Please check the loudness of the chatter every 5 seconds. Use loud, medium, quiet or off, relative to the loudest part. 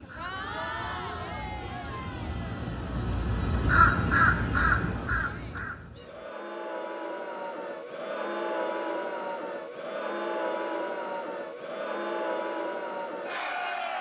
medium, loud, loud.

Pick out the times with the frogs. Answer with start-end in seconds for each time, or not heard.
not heard.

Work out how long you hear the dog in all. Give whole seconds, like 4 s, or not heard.
not heard.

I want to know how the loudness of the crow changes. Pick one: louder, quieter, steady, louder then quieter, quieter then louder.
louder then quieter.